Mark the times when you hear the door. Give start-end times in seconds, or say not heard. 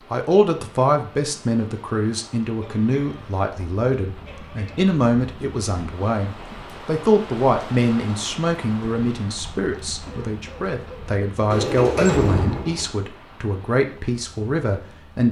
11.5-12.9.